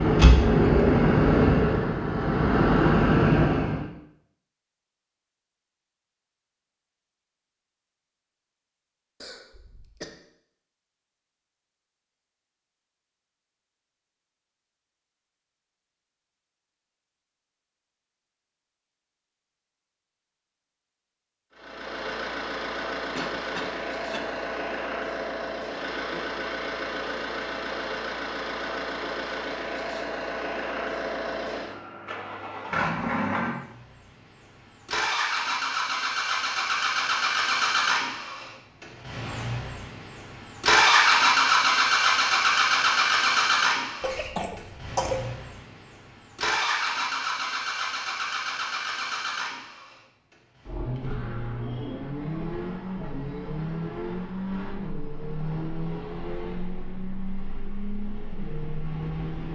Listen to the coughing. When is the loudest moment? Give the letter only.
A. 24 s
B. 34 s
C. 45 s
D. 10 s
C.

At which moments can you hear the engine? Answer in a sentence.
The engine can be heard from 0.0 to 3.9 s and from 21.6 to 59.5 s.